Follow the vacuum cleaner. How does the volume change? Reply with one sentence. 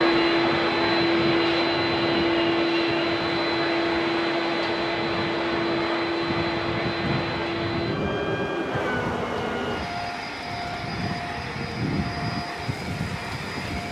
The volume of the vacuum cleaner goes down.